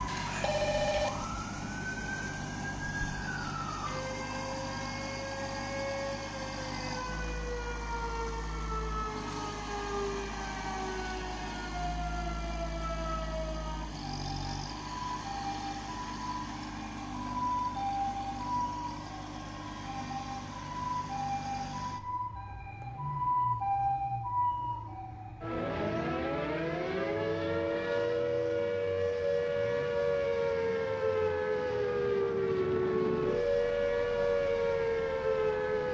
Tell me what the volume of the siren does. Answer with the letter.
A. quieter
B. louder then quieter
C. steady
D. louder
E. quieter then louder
D.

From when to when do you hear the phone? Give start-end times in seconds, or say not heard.
0.1-1.1.